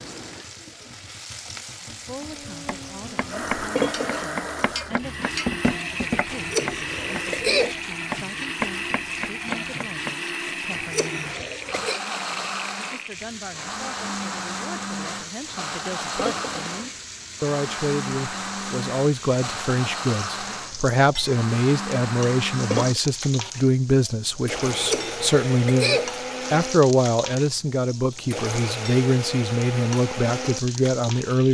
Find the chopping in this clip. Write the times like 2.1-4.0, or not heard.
2.2-10.1.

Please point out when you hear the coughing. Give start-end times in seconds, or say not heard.
6.3-7.8, 10.7-12.0, 24.7-26.1.